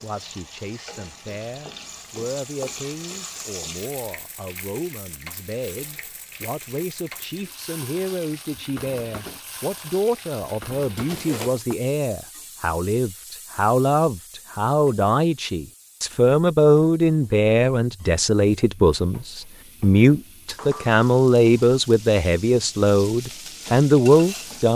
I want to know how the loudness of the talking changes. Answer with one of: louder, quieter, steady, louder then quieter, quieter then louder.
louder.